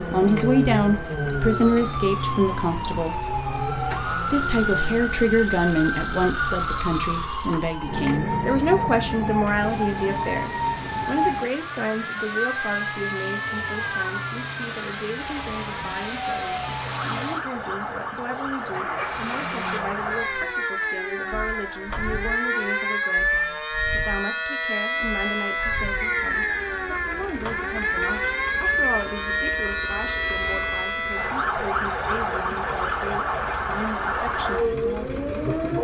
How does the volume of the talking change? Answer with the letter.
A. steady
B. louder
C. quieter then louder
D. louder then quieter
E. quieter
E.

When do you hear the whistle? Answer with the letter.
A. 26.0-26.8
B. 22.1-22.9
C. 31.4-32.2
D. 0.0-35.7
A.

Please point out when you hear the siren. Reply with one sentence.
The siren can be heard from 0.0 to 35.7 s.